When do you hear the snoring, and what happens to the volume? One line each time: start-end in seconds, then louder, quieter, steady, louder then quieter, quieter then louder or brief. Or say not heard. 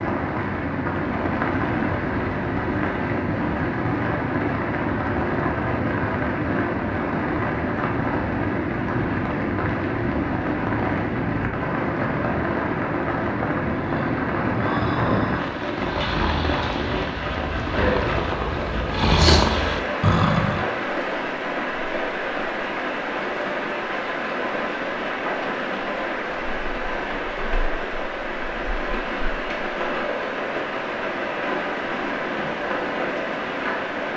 13.8-20.8 quieter then louder.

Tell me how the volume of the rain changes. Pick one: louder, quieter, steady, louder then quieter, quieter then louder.
steady.